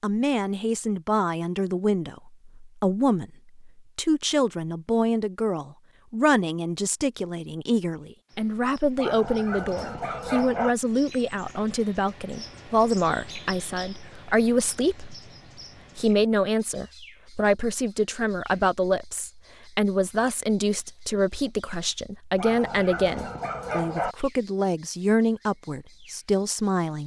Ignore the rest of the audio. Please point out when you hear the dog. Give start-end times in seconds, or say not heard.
8.9-10.8, 22.4-24.1.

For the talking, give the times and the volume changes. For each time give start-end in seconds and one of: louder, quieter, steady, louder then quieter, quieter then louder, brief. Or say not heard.
0.0-15.2 steady
15.9-27.0 steady.